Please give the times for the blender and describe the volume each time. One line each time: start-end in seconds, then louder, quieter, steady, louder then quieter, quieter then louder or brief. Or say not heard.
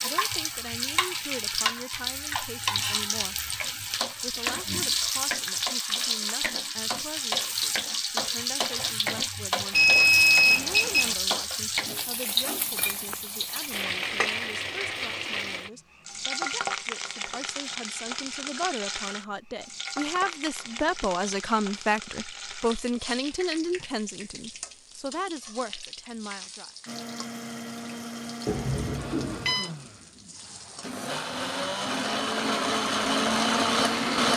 26.9-34.3 louder.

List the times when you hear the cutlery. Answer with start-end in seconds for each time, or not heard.
not heard.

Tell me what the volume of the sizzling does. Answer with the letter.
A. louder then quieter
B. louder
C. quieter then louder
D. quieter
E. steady
D.